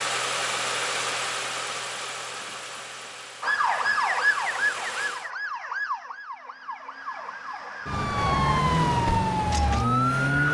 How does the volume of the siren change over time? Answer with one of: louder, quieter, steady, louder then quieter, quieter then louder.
quieter then louder.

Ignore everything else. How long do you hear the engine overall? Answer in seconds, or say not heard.
5 s.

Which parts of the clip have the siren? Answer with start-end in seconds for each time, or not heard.
3.4-10.4.